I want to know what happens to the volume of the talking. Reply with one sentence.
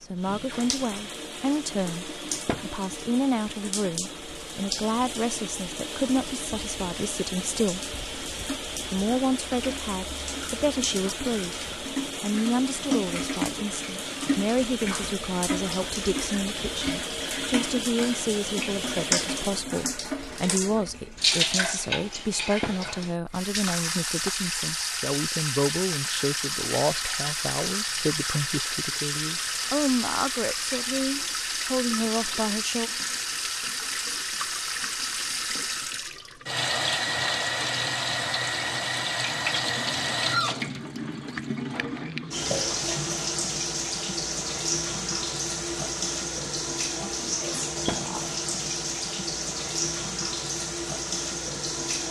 The loudness of the talking stays about the same.